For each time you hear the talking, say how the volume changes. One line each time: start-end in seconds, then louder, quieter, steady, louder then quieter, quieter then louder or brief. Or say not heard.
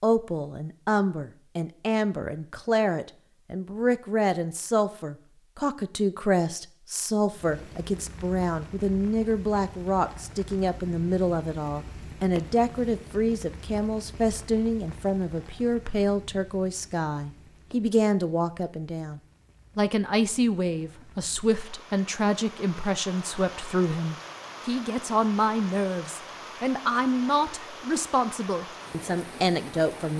0.0-30.1 steady.